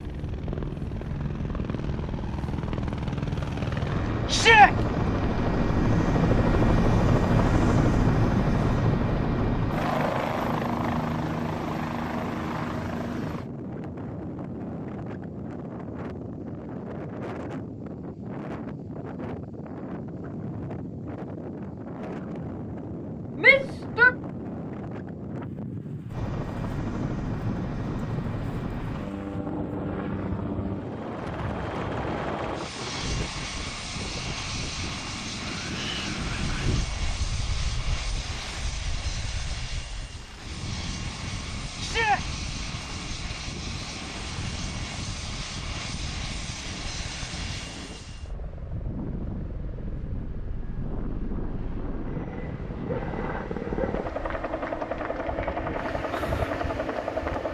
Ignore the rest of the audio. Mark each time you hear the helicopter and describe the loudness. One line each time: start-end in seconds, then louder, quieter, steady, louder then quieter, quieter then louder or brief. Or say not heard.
0.0-13.5 louder then quieter
26.1-57.4 quieter then louder.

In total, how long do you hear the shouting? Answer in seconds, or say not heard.
2 s.